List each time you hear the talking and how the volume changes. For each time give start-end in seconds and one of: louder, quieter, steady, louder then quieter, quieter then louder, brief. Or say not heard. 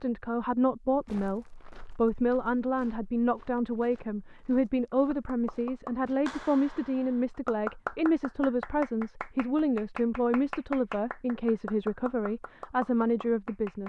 0.0-13.8 steady.